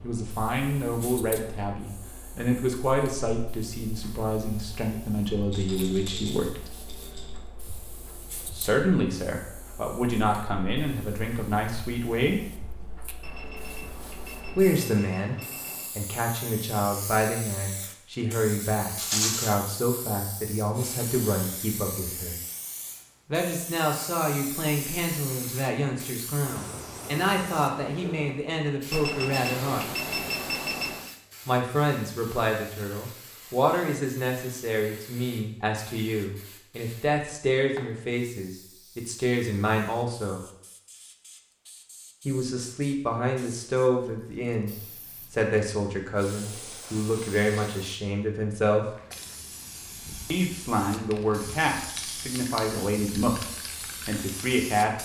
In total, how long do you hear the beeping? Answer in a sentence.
The beeping can be heard for 5 seconds in total.